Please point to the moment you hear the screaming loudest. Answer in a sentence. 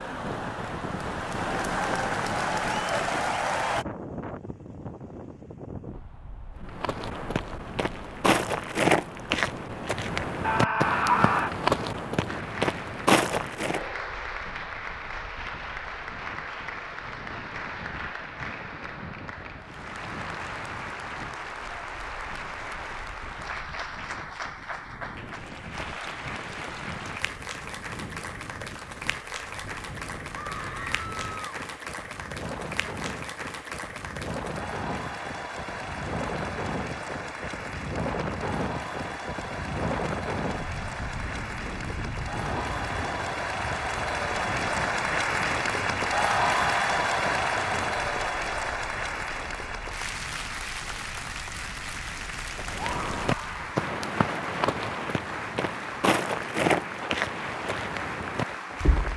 The volume of the screaming peaks at 11 seconds.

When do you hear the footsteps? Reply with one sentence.
You can hear the footsteps from 6.7 to 13.8 s and from 52.5 to 59.1 s.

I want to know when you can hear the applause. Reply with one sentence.
The applause can be heard from 0.0 to 3.9 s and from 12.2 to 59.1 s.